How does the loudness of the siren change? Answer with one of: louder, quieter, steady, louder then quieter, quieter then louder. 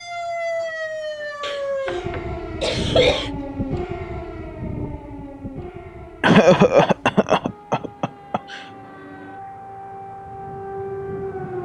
quieter then louder.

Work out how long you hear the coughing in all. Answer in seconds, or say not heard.
4 s.